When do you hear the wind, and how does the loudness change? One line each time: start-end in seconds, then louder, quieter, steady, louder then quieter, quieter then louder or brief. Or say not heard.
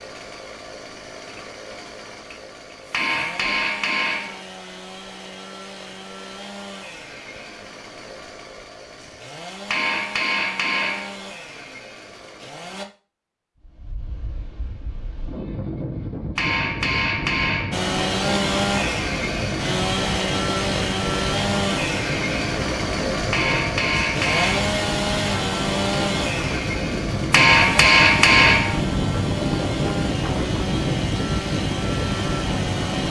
13.6-33.0 louder.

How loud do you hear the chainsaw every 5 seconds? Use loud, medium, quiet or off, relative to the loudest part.
quiet, quiet, quiet, loud, loud, loud, medium.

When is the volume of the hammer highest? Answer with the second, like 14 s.
28 s.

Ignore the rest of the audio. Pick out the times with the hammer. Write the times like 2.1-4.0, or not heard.
2.9-4.4, 9.7-11.2, 16.4-17.9, 23.3-24.7, 27.3-28.8.